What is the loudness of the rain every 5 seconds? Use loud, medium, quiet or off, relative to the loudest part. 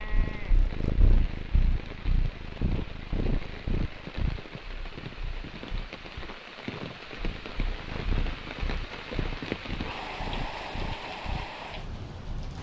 medium, loud, loud.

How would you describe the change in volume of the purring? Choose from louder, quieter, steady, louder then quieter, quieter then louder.
quieter then louder.